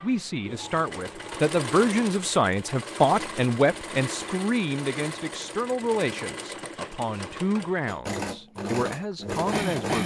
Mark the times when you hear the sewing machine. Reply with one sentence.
You can hear the sewing machine from 0.0 to 10.0 s.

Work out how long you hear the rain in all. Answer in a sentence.
You can't hear the rain here.